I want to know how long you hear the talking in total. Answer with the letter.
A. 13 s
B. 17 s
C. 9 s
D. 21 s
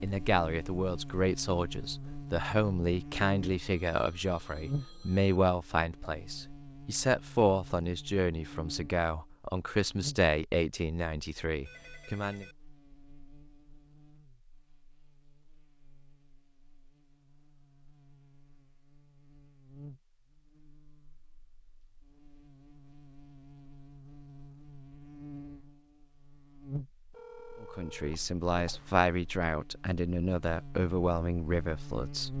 B.